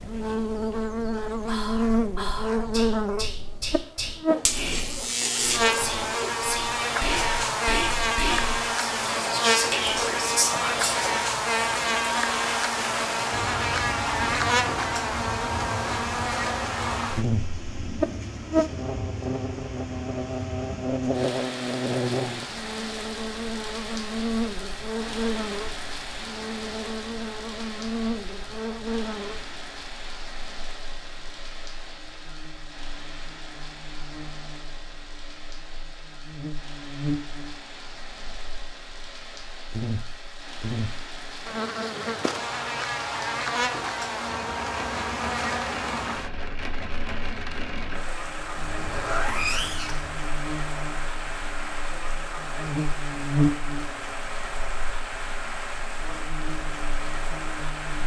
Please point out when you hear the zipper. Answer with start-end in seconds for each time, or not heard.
4.2-6.3, 48.5-50.1.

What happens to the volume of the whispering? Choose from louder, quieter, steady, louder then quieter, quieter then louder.
louder.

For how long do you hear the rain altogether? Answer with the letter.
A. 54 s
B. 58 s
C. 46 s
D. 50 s
C.